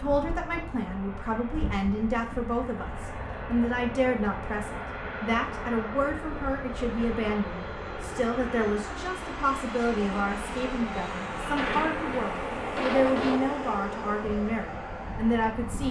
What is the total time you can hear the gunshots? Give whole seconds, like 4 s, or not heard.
2 s.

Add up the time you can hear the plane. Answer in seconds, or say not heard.
16 s.